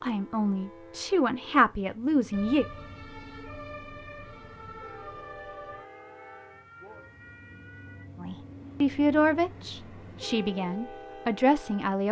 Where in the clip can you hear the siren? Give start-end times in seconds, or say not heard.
2.3-8.1.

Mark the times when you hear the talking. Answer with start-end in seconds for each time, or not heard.
0.0-2.6, 8.2-12.0.